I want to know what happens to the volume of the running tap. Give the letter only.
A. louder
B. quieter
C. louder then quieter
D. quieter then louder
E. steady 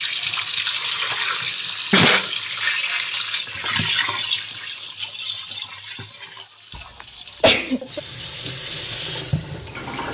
D.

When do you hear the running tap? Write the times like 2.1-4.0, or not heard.
0.0-10.0.